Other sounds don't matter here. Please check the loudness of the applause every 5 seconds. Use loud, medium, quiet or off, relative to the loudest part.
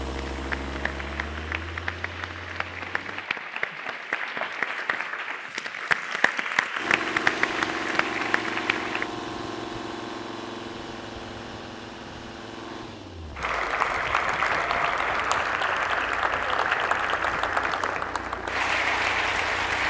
medium, loud, loud, loud.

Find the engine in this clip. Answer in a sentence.
You can hear the engine from 0.0 to 3.3 s and from 6.8 to 19.8 s.